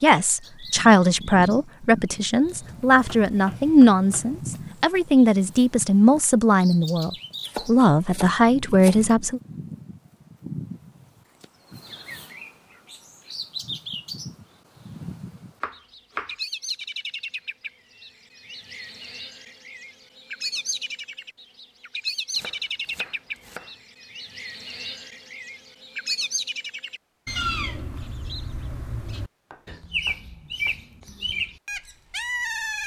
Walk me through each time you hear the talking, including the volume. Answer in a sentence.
You can hear the talking from 0.0 to 9.4 s, at a steady volume.